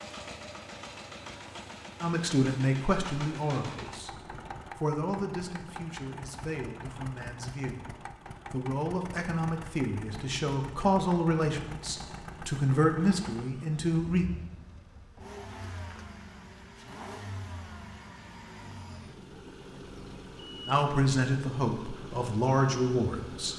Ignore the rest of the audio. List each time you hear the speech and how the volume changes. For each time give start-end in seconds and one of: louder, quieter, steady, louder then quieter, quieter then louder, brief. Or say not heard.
2.0-4.2 brief
4.8-14.2 louder
20.6-23.5 brief.